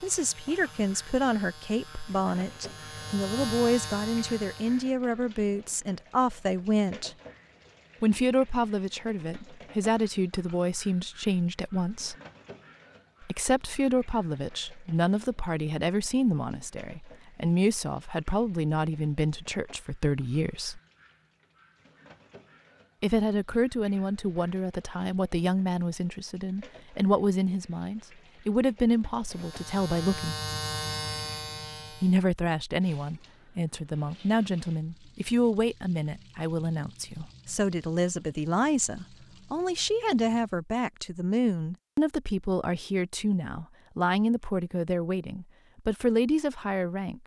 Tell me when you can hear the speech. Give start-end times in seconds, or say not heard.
0.0-7.2, 8.0-12.2, 13.2-20.8, 23.0-30.4, 32.0-47.2.